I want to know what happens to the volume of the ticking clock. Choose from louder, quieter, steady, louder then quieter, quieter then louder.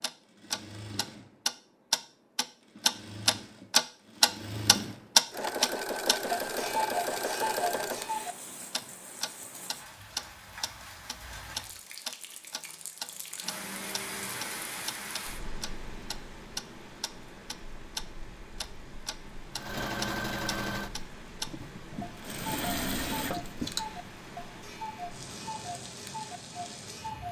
quieter.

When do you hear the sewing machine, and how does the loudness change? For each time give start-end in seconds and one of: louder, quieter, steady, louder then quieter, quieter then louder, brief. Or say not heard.
0.0-8.2 louder
19.6-23.9 quieter then louder.